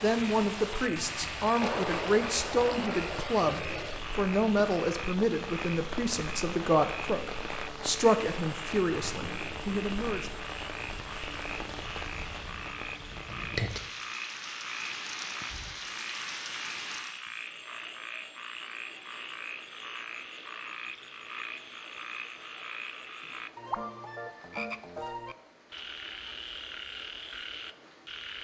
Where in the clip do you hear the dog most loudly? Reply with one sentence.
The loudest moment of the dog is at 2 seconds.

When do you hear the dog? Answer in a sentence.
The dog can be heard from 1.6 to 3.4 s.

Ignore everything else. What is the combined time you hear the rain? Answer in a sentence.
The rain can be heard for 28 seconds in total.